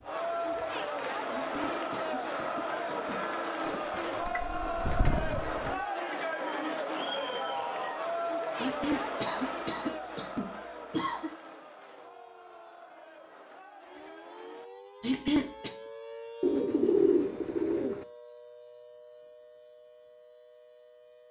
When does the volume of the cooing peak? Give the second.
17 s.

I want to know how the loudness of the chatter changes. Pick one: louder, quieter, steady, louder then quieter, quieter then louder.
quieter.